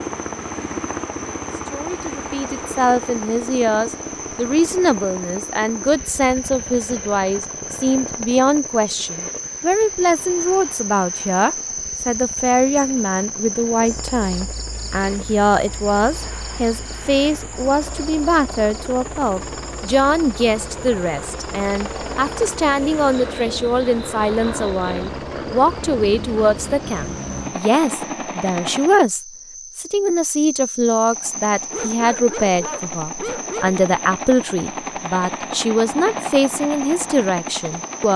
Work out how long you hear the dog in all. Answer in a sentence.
You can hear the dog for 2 seconds altogether.